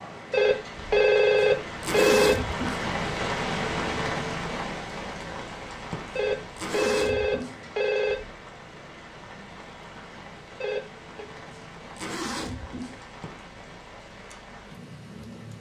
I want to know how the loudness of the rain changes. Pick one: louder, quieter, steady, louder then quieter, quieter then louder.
quieter.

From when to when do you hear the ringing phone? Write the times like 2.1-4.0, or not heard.
0.3-2.4, 6.2-8.2, 10.6-11.2.